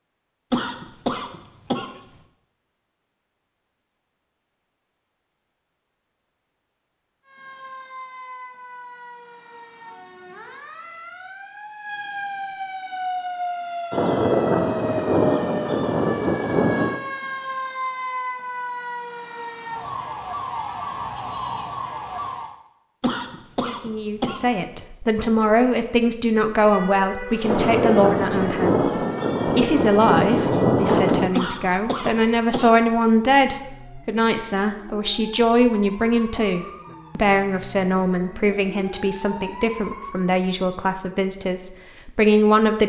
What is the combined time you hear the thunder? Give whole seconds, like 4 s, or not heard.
7 s.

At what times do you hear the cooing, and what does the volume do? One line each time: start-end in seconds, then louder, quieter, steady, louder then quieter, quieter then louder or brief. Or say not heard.
not heard.